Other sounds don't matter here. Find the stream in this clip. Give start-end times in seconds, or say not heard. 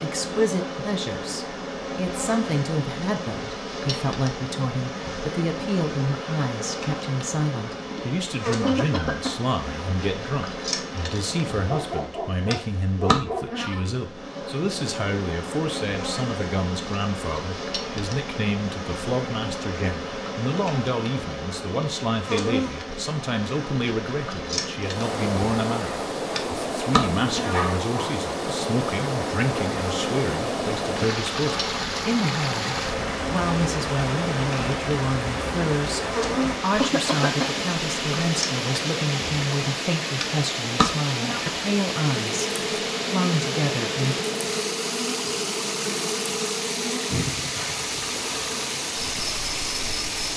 24.8-50.3.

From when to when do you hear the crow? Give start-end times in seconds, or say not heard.
not heard.